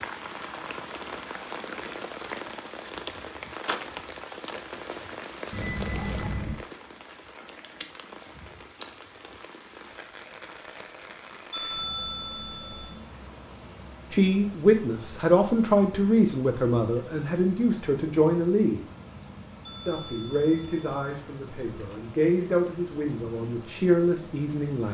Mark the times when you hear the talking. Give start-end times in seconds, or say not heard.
14.1-18.8, 19.9-24.8.